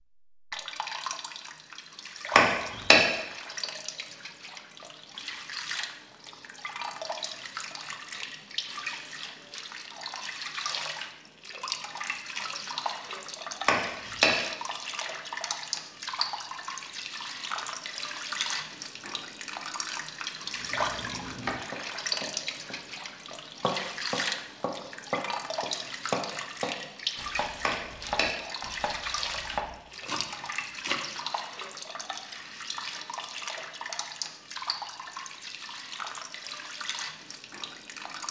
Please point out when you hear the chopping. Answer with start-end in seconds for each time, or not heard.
20.4-31.1.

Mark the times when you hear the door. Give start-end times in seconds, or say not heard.
2.4-3.0, 13.7-14.3, 27.6-28.3.